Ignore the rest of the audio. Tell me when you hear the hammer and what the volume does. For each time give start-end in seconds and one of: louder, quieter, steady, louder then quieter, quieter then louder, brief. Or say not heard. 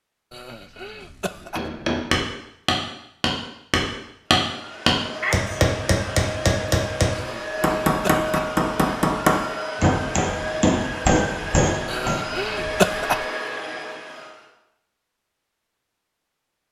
1.6-12.2 steady.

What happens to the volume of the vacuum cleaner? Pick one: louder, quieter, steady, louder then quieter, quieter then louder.
steady.